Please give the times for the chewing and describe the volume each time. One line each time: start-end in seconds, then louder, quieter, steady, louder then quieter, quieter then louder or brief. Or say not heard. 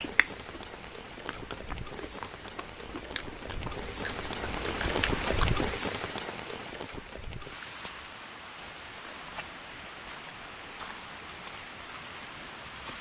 0.0-5.9 louder.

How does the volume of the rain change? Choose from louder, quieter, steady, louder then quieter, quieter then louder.
louder then quieter.